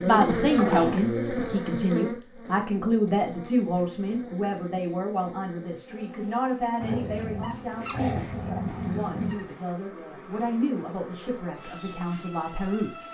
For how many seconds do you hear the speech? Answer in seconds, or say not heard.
13 s.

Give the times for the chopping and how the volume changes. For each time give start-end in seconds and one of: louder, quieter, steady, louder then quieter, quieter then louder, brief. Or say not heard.
not heard.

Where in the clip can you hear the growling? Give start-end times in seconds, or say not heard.
0.6-1.1, 6.8-9.5.